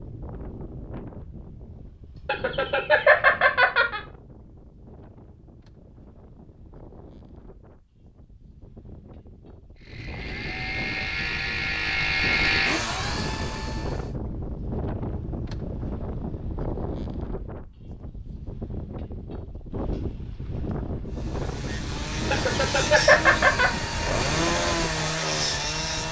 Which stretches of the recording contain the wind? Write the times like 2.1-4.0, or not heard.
0.0-26.0.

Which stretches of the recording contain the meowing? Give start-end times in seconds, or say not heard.
not heard.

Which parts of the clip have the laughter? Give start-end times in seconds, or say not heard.
2.2-4.0, 22.3-23.7.